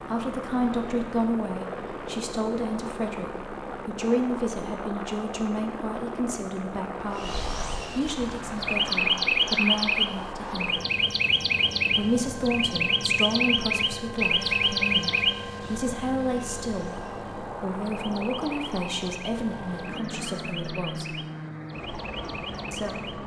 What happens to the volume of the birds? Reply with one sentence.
The volume of the birds goes down.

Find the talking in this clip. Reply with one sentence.
The talking can be heard from 0.0 to 10.8 s, from 11.9 to 21.1 s and from 22.7 to 23.1 s.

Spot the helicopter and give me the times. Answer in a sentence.
The helicopter can be heard from 0.0 to 23.2 s.